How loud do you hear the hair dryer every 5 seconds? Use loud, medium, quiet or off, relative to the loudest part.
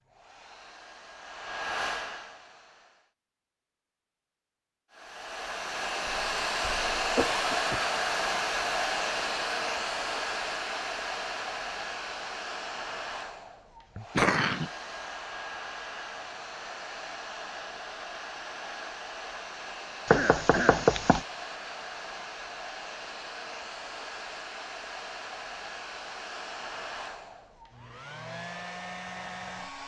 medium, loud, medium, medium, medium, medium.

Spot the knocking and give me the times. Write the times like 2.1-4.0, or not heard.
20.1-21.2.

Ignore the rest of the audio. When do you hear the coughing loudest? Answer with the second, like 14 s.
14 s.